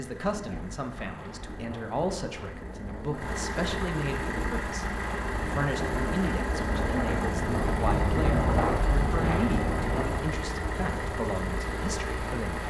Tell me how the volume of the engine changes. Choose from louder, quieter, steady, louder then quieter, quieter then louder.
louder.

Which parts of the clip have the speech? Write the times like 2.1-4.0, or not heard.
0.0-12.6.